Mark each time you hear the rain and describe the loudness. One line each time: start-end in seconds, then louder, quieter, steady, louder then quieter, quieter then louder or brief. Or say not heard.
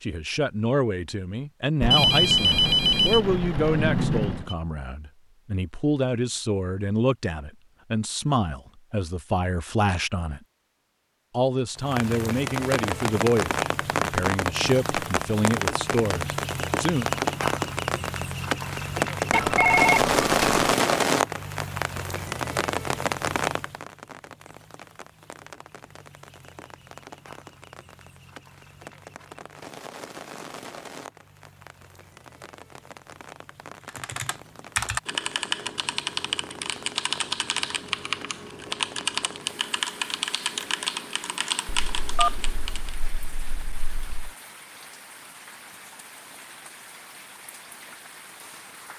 11.8-48.9 quieter.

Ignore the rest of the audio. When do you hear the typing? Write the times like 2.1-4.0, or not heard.
33.9-43.0.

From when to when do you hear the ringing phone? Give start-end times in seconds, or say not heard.
1.8-4.5, 19.3-20.6, 41.9-44.3.